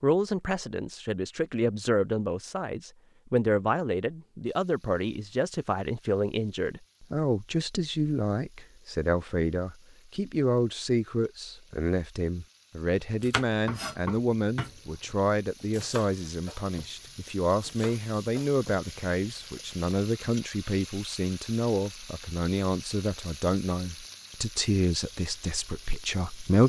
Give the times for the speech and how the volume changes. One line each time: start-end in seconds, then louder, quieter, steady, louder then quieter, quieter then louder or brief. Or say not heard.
0.0-26.6 steady.